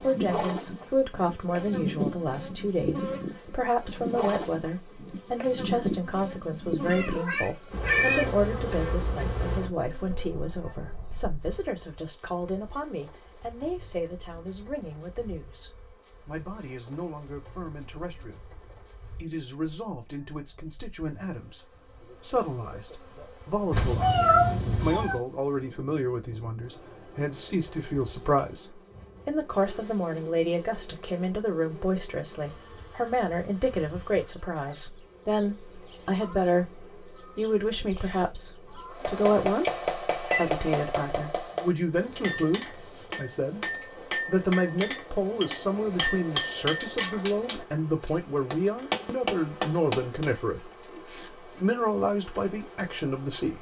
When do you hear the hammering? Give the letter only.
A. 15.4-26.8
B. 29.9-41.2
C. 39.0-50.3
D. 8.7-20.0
C.